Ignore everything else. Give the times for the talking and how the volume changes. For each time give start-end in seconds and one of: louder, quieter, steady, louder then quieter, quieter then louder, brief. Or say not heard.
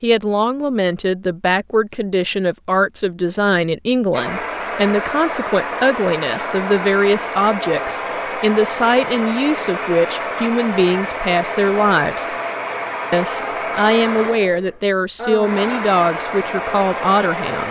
0.0-12.3 steady
13.1-17.6 steady.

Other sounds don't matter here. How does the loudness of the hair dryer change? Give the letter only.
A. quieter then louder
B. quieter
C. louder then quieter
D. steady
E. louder
D.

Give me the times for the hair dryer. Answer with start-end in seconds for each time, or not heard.
4.1-17.6.